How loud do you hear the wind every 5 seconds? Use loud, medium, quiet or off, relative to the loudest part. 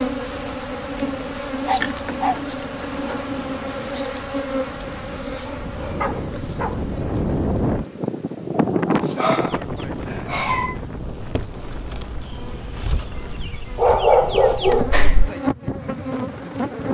quiet, loud, medium, quiet.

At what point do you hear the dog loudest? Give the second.
14 s.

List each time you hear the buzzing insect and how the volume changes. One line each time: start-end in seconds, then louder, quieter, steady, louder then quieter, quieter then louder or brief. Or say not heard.
0.0-16.8 quieter then louder.